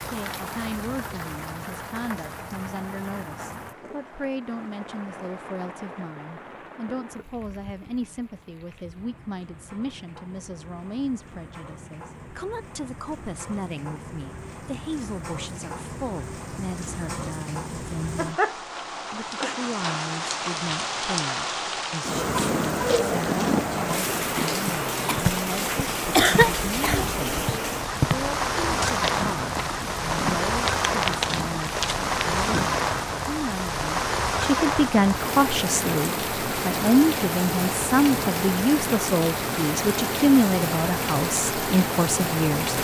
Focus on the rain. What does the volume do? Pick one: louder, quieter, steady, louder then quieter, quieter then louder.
louder.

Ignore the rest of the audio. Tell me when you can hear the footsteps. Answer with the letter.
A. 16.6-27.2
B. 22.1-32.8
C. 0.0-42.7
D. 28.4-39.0
B.